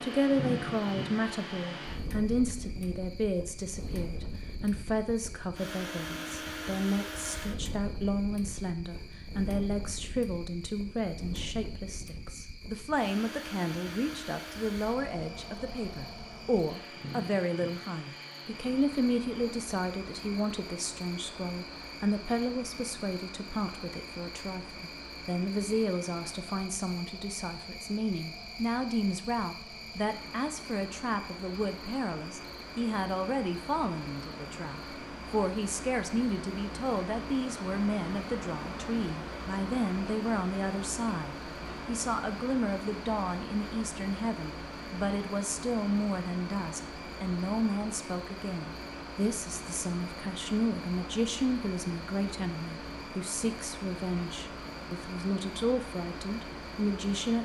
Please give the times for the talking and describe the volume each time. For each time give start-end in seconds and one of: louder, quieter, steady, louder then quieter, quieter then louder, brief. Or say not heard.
0.0-57.3 steady.